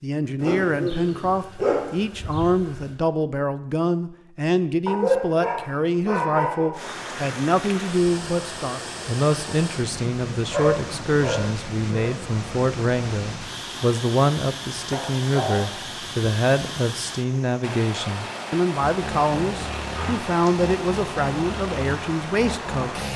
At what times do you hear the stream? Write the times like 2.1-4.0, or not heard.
6.7-23.1.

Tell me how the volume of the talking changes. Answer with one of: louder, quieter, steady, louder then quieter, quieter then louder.
steady.